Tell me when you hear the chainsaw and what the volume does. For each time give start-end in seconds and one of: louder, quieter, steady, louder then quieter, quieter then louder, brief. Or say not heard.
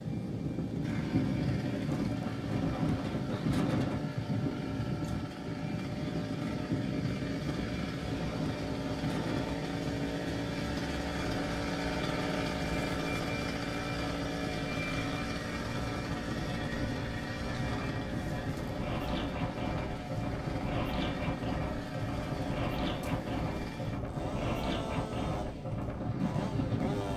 0.0-27.1 louder then quieter.